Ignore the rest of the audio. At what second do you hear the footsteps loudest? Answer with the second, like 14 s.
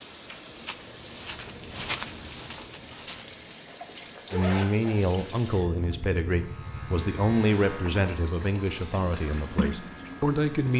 2 s.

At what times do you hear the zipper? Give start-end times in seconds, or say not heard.
3.6-5.0.